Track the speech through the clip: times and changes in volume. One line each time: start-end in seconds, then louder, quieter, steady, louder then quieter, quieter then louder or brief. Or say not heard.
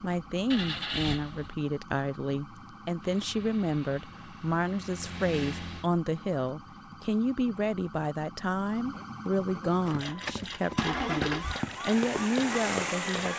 0.0-13.3 steady.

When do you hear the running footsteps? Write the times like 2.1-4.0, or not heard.
9.8-13.3.